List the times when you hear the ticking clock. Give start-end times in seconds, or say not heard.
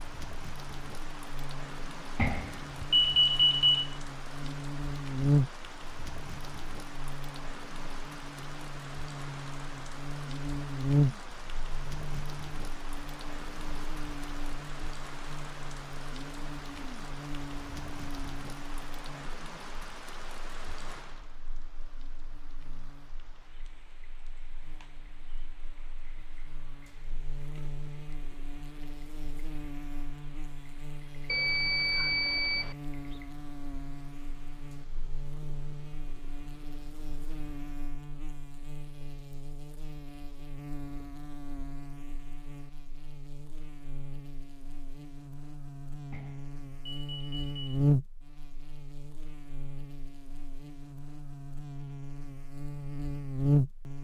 not heard.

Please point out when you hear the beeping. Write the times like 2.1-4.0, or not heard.
2.1-3.9, 31.2-32.8, 46.1-47.8.